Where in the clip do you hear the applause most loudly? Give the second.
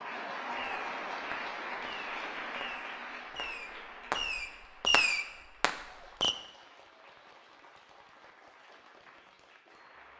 1 s.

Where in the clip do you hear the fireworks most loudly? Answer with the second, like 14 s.
5 s.